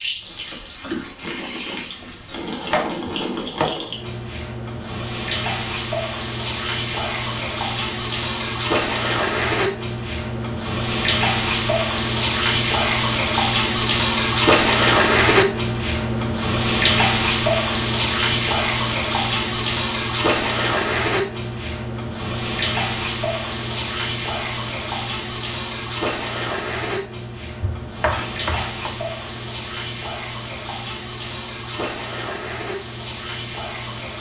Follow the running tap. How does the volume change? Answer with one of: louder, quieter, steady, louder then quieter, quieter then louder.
louder then quieter.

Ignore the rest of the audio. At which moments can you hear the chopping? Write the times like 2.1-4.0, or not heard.
2.5-3.8, 27.6-28.9.